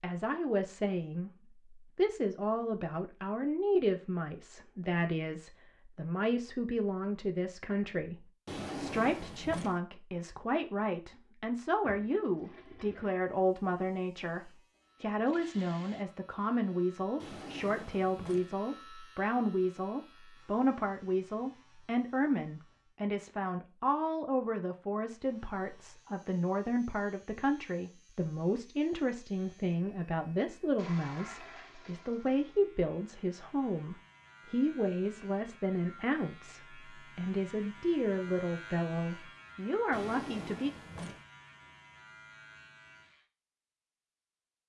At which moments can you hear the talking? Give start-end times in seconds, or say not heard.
0.0-40.7.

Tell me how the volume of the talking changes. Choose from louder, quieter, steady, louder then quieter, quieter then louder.
steady.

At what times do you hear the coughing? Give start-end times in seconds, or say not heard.
not heard.